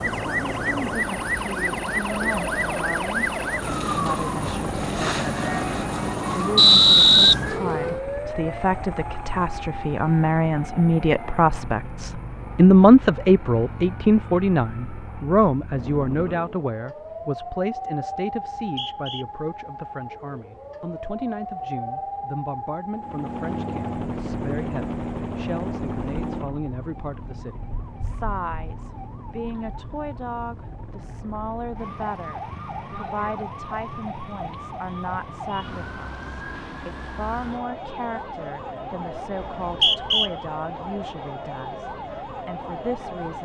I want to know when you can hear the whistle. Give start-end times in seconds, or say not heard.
6.5-7.3, 18.4-19.2, 39.4-40.3.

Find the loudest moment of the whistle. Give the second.
7 s.